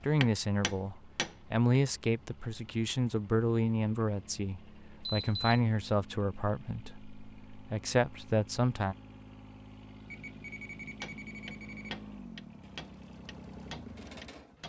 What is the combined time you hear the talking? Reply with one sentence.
You can hear the talking for 9 seconds altogether.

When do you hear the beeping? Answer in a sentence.
You can hear the beeping from 5.0 to 5.6 s and from 10.1 to 11.9 s.